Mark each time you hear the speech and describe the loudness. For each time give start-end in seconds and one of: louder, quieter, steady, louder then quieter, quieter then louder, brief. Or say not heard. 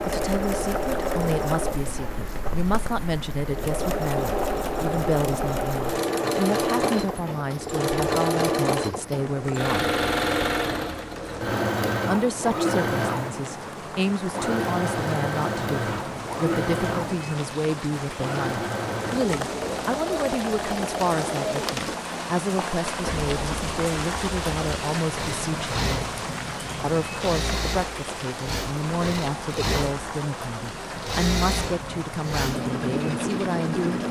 0.1-9.9 steady
12.1-26.0 steady
26.8-34.0 steady.